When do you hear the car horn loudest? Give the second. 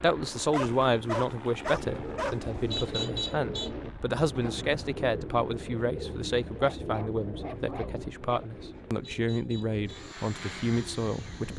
3 s.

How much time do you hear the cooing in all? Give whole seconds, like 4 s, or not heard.
10 s.